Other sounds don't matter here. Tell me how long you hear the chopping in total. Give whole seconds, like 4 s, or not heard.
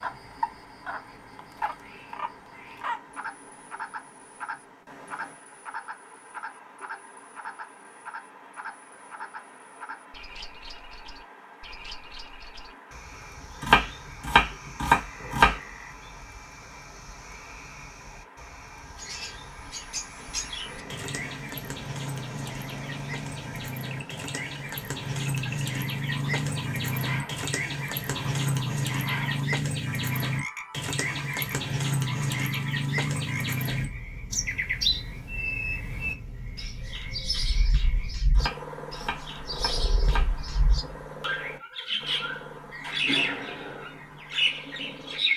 5 s.